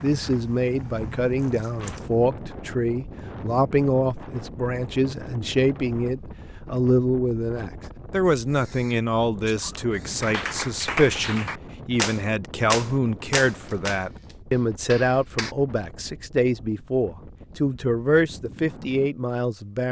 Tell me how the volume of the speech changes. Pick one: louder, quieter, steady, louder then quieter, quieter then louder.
steady.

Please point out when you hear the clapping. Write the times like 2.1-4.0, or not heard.
10.2-15.5.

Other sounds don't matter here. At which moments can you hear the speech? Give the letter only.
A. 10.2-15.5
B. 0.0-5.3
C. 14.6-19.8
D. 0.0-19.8
D.